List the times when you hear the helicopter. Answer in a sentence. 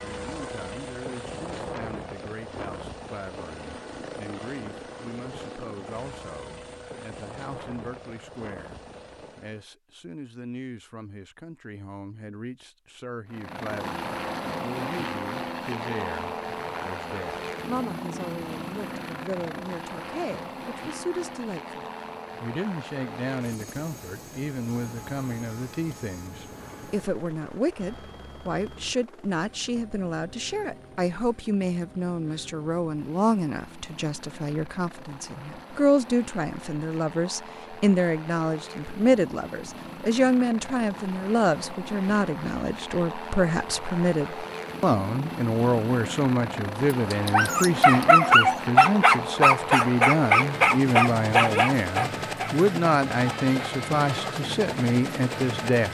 You can hear the helicopter from 0.0 to 9.7 s and from 13.2 to 55.8 s.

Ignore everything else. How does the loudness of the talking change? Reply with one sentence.
The volume of the talking goes up.